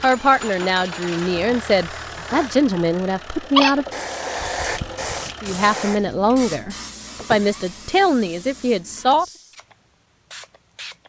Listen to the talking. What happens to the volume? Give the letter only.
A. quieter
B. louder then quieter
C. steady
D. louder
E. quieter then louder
C.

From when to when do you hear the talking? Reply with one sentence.
The talking can be heard from 0.0 to 3.9 s and from 5.4 to 9.2 s.